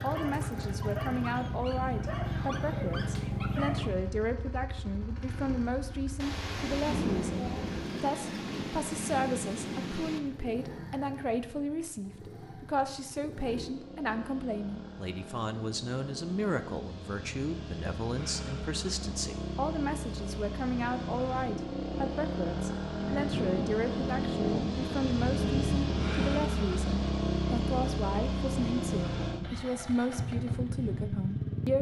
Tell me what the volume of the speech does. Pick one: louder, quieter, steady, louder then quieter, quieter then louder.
steady.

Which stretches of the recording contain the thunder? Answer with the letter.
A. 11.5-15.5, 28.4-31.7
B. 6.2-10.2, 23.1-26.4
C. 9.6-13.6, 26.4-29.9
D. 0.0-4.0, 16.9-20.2
B.